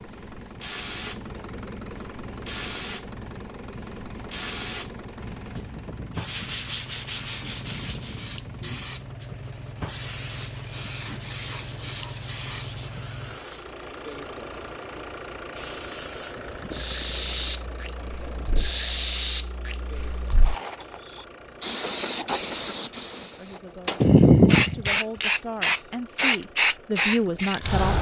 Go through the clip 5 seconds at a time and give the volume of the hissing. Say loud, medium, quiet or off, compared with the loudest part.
quiet, quiet, quiet, medium, loud, loud.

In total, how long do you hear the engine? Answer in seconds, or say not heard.
28 s.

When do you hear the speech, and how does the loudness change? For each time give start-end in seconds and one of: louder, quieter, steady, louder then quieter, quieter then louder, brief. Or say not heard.
23.2-27.9 louder.